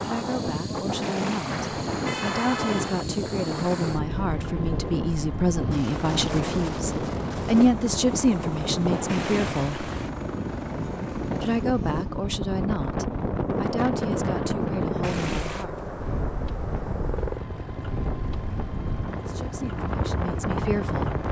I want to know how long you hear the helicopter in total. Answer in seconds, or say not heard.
21 s.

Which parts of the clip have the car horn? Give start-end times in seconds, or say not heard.
1.0-3.0, 9.1-10.1, 15.0-15.7.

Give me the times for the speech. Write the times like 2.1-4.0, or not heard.
0.0-9.9, 11.4-15.8, 19.2-21.2.